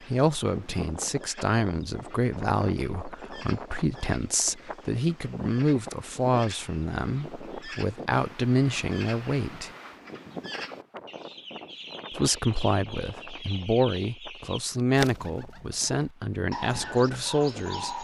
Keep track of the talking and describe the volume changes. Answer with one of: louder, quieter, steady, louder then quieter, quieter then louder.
steady.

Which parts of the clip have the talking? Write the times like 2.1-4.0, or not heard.
0.1-9.7, 12.1-18.0.